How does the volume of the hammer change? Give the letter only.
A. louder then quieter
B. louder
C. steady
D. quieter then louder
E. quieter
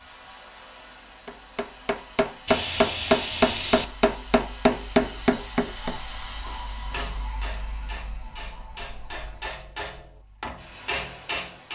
D.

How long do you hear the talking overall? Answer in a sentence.
You can't hear the talking here.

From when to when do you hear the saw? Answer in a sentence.
The saw can be heard from 2.5 to 3.9 s.